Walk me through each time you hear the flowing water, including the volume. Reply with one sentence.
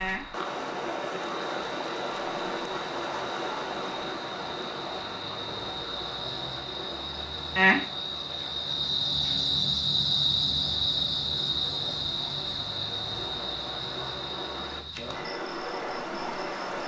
The flowing water can be heard from 0.0 to 16.8 s, getting quieter then louder.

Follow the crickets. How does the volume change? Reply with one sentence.
The loudness of the crickets goes up, then down.